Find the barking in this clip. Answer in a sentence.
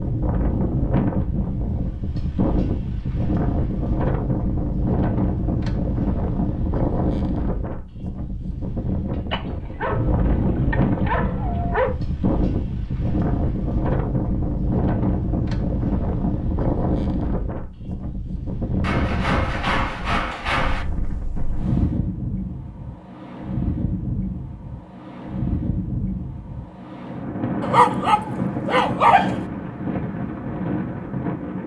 The barking can be heard from 9.3 to 11.9 s and from 27.6 to 29.4 s.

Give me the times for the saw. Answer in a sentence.
You can hear the saw from 18.8 to 20.9 s.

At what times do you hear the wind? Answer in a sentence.
The wind can be heard from 0.0 to 31.6 s.